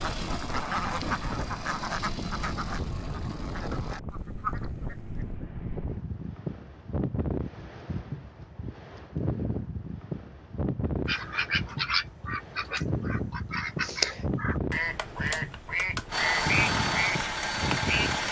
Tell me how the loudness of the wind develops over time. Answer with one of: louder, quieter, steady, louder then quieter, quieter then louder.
steady.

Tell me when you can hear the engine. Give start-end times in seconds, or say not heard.
16.1-18.2.